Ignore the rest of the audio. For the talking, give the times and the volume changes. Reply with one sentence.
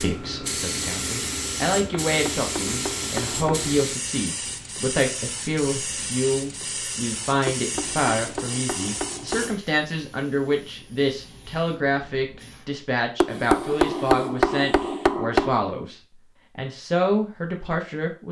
The talking can be heard from 0.0 to 15.9 s, at a steady volume; and briefly from 16.6 to 18.2 s.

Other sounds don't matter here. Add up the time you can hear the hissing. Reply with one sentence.
The hissing can be heard for 15 seconds in total.